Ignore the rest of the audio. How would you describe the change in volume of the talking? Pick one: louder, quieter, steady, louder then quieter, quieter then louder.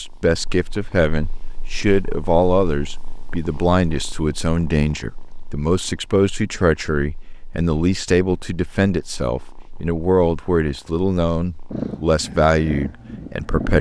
steady.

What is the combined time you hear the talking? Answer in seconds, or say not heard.
14 s.